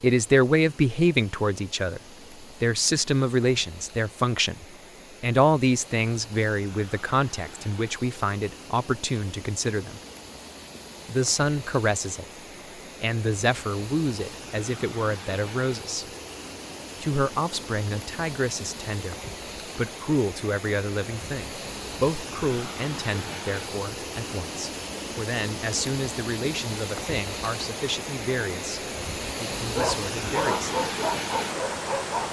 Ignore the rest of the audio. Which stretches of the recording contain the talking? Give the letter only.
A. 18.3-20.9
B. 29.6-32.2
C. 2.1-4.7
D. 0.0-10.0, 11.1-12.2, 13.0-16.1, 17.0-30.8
D.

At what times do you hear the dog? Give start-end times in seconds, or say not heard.
29.6-32.2.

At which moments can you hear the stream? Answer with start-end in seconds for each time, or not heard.
0.0-32.2.